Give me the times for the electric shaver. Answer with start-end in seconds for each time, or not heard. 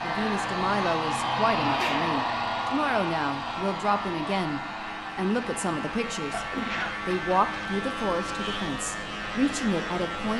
0.0-10.3.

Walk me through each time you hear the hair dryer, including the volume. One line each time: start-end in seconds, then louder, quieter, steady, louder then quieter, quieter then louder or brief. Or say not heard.
0.0-10.3 quieter.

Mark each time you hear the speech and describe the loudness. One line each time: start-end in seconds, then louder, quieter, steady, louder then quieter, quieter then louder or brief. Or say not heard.
0.0-10.3 steady.